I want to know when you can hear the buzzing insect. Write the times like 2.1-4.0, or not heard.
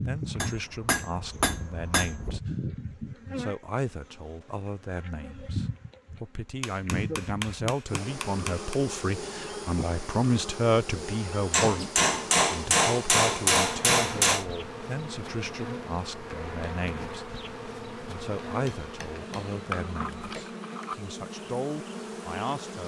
0.0-22.8.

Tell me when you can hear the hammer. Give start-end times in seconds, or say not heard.
0.4-2.4, 6.6-8.8, 11.5-14.4, 18.6-20.4.